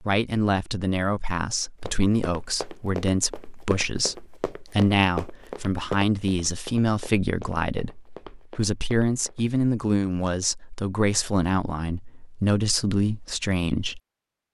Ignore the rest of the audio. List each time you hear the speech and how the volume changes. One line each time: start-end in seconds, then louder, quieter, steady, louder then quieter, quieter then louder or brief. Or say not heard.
0.0-14.0 steady.